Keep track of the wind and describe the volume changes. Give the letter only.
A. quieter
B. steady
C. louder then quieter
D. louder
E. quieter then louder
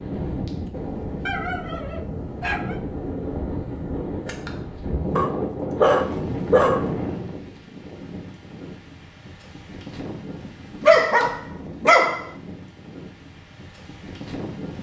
A.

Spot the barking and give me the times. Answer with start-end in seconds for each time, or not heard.
1.2-2.8, 5.2-7.0, 10.8-12.2.